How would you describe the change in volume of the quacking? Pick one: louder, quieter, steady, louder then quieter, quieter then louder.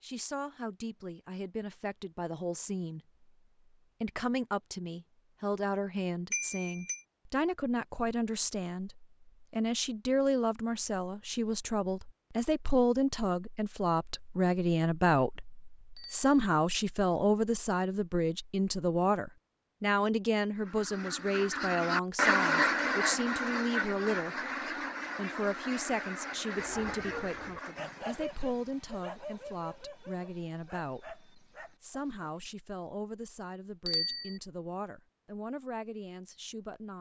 quieter.